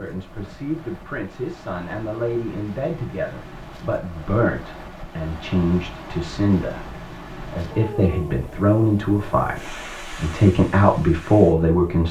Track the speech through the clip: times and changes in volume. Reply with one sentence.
You can hear the speech from 0.0 to 12.0 s, getting louder.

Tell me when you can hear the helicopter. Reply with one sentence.
The helicopter can't be heard in this clip.